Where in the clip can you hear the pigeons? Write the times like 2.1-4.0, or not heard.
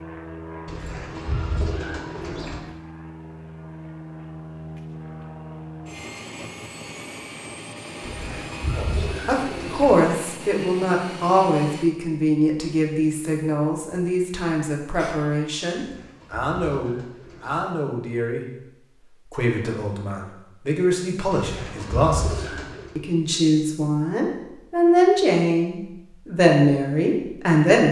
0.7-2.6, 8.0-9.9, 15.8-17.6, 21.3-22.9.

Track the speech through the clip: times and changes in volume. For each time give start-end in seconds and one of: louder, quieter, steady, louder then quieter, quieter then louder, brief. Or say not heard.
8.8-27.8 quieter then louder.